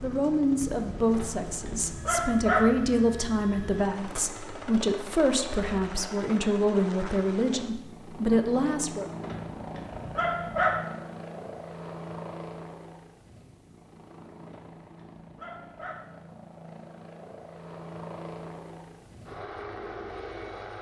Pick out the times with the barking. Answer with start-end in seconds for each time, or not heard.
1.1-2.6, 9.2-10.8, 14.4-16.0.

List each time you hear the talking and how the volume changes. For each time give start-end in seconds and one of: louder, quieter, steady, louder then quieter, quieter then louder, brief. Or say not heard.
0.0-9.2 steady.